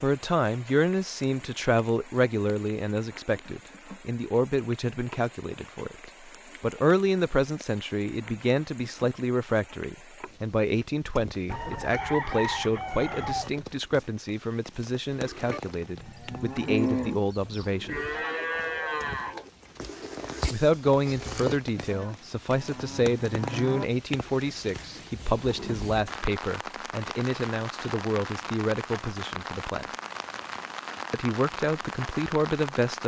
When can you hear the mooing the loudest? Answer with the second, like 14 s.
17 s.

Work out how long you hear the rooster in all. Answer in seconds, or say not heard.
2 s.